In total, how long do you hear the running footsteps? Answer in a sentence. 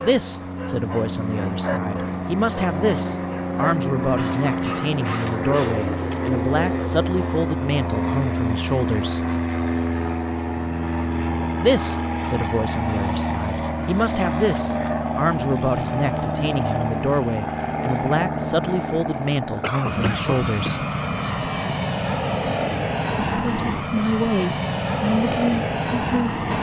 The running footsteps can't be heard in this clip.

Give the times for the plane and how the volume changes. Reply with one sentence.
You can hear the plane from 0.0 to 26.5 s, at a steady volume.